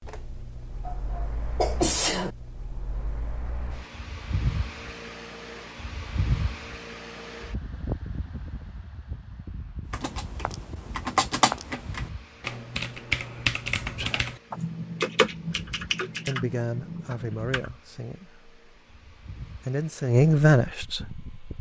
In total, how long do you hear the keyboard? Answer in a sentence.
The keyboard can be heard for 8 seconds in total.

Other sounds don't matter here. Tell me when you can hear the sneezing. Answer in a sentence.
The sneezing can be heard from 0.8 to 2.3 s.